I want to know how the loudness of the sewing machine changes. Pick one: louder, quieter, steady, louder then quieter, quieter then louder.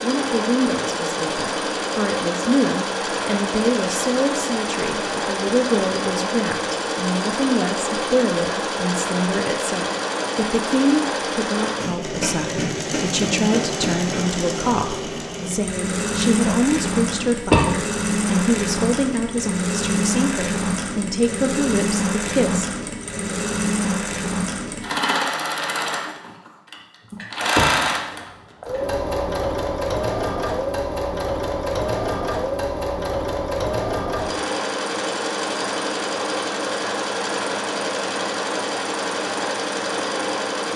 steady.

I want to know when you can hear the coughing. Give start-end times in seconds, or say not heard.
17.1-17.7, 27.1-28.7.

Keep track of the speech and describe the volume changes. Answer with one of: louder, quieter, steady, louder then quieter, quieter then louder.
steady.